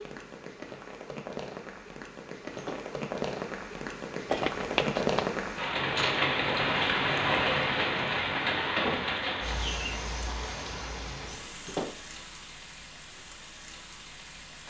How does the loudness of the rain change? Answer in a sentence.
The loudness of the rain goes up, then down.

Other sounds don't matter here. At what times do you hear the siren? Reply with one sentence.
The siren can't be heard in this clip.